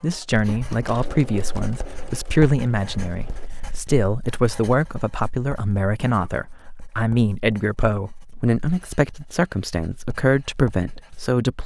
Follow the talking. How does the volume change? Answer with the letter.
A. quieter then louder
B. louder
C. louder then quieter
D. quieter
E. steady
E.